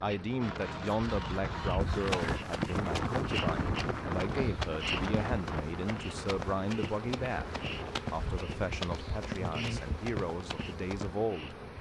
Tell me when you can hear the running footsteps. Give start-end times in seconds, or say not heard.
1.7-11.2.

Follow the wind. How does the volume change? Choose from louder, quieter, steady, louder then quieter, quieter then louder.
louder then quieter.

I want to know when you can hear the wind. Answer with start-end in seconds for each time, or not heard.
0.1-8.1.